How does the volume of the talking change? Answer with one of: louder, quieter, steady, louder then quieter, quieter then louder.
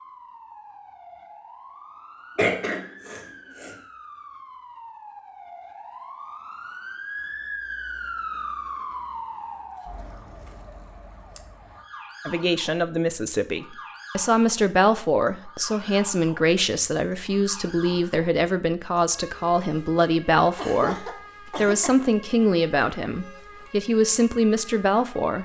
steady.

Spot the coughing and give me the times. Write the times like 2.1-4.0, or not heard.
2.4-3.8, 20.6-22.1.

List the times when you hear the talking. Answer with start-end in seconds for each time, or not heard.
12.2-25.4.